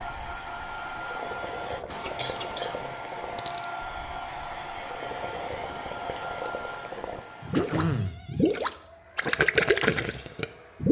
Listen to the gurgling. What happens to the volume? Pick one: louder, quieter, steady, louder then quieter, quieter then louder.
louder.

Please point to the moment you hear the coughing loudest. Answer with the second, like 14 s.
8 s.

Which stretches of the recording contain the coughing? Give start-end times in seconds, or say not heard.
1.9-3.6, 7.5-8.2.